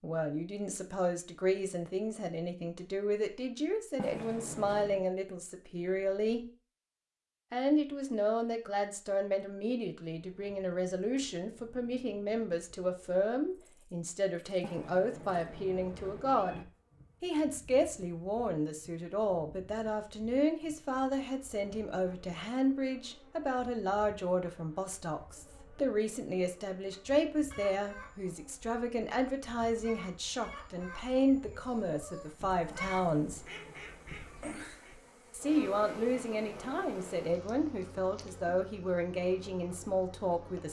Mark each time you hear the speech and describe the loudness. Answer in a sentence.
The speech can be heard from 0.0 to 6.5 s, at a steady volume; from 7.5 to 33.5 s, at a steady volume; and from 35.3 to 40.6 s, at a steady volume.